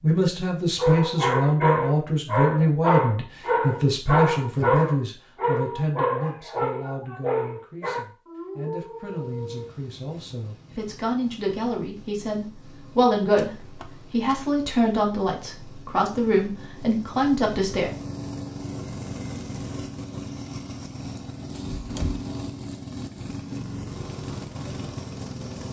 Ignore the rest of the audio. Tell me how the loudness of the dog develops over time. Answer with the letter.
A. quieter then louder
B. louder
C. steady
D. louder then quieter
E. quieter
E.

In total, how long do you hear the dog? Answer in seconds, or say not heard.
9 s.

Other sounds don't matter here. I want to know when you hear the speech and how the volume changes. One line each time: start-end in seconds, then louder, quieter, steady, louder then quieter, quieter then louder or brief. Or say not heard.
0.0-17.9 quieter then louder.